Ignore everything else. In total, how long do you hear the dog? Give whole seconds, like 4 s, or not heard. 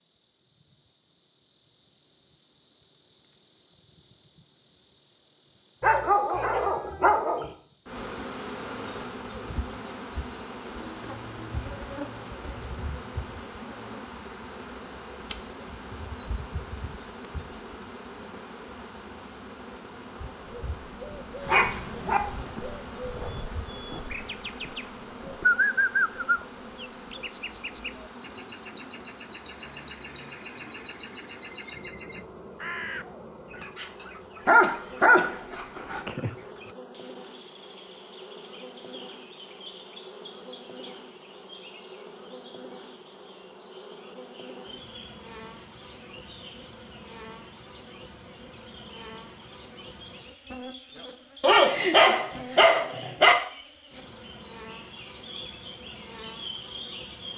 6 s.